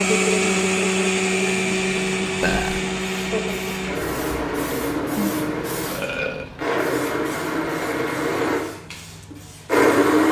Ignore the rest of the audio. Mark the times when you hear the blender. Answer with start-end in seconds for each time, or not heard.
0.0-10.2.